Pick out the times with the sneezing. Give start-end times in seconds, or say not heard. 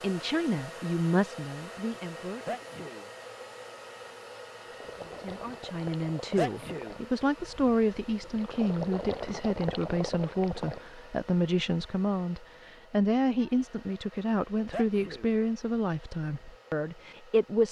2.5-3.0, 6.3-7.0, 14.7-15.3.